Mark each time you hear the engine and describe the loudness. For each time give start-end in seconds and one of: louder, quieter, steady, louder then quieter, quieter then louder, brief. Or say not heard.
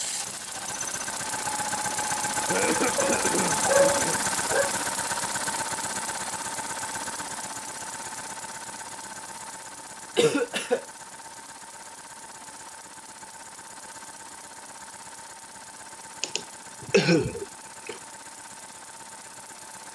0.0-19.9 quieter.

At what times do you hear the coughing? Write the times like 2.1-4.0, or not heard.
2.5-4.2, 10.2-10.8, 16.2-17.9.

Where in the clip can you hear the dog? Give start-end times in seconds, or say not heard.
3.0-4.7.